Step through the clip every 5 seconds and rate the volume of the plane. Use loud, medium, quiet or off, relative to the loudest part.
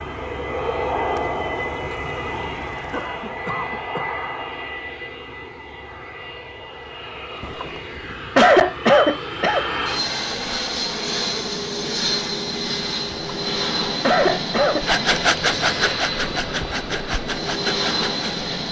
loud, medium, loud, loud.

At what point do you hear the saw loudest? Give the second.
15 s.